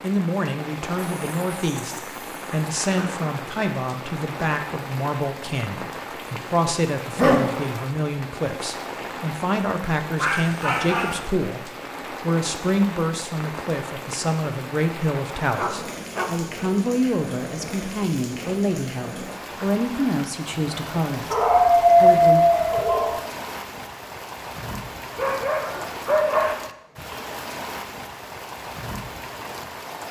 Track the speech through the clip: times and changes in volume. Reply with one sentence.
You can hear the speech from 0.0 to 22.4 s, at a steady volume.